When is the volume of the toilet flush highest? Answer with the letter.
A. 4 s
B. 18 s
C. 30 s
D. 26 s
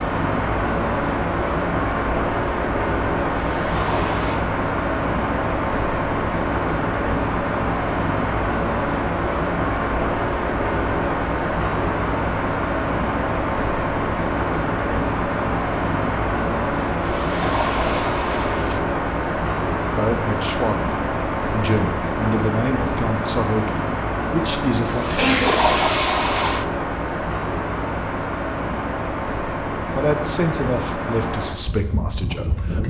D.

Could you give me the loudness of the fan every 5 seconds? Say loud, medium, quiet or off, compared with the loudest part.
loud, loud, loud, loud, loud, loud, medium.